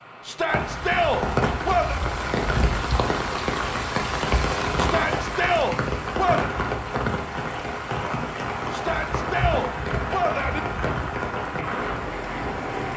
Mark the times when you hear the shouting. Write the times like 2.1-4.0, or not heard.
0.2-2.0, 4.8-6.5, 8.7-10.6.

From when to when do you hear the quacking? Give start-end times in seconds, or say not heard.
not heard.